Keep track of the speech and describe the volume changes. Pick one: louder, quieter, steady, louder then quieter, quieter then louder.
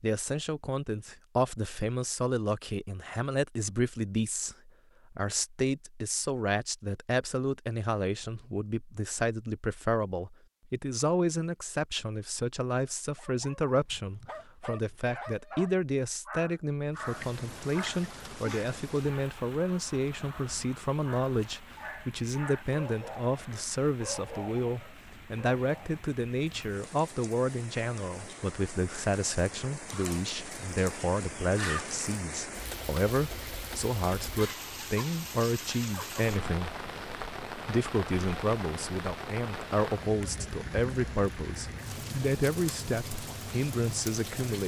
steady.